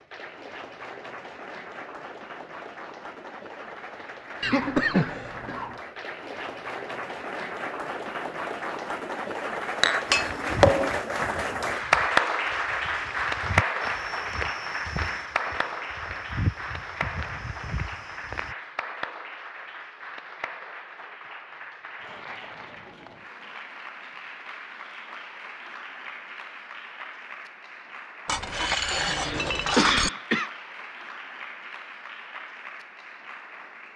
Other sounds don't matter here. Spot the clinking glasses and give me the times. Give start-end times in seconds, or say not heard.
9.8-10.9, 28.2-30.1.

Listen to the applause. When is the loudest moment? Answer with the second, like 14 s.
12 s.